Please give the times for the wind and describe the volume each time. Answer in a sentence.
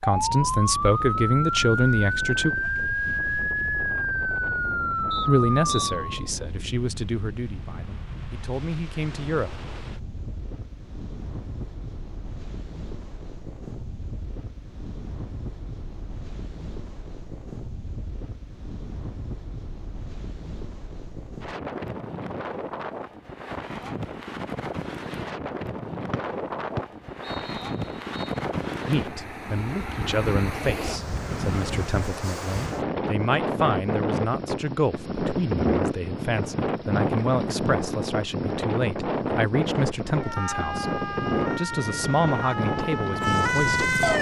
You can hear the wind from 0.0 to 44.1 s, getting louder.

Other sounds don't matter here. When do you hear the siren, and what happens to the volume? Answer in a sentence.
You can hear the siren from 0.0 to 6.0 s, at a steady volume; and from 40.0 to 44.1 s, getting louder.